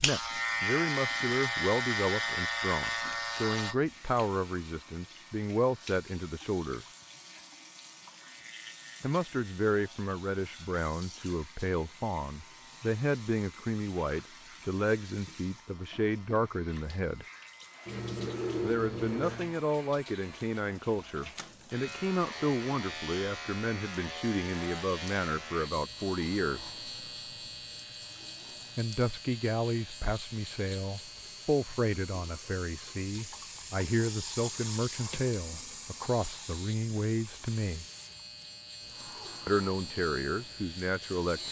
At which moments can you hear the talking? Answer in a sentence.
The talking can be heard from 0.0 to 6.9 s, from 9.0 to 17.2 s, from 18.6 to 26.7 s, from 28.8 to 37.9 s and from 39.5 to 41.4 s.